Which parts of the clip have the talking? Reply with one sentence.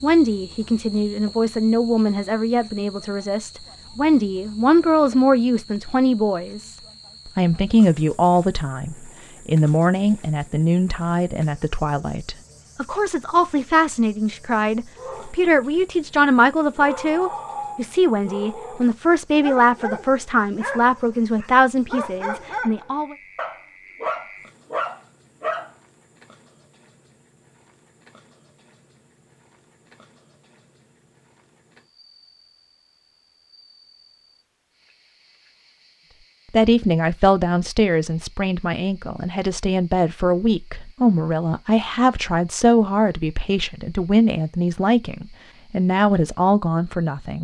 The talking can be heard from 0.0 to 23.1 s and from 36.5 to 47.4 s.